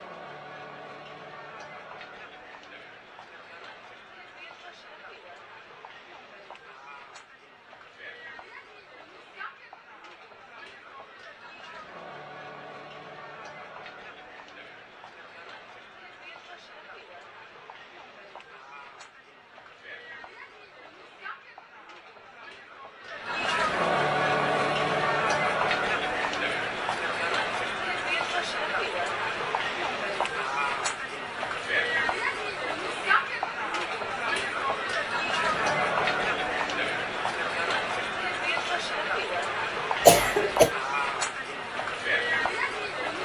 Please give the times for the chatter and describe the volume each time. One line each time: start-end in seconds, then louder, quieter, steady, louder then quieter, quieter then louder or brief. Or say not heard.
0.0-43.2 louder.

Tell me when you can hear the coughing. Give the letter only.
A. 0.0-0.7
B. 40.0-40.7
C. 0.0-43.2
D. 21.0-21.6
B.